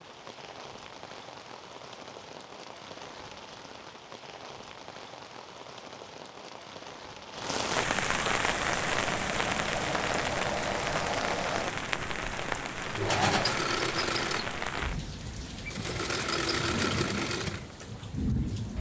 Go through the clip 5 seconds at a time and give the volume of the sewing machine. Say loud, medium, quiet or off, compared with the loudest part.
off, medium, loud, loud.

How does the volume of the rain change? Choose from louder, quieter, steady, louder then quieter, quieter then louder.
louder then quieter.